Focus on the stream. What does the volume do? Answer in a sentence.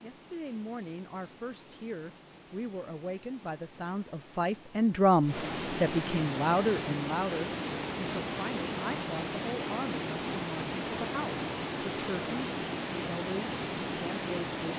The loudness of the stream goes up.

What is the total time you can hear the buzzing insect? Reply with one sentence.
The buzzing insect can't be heard in this clip.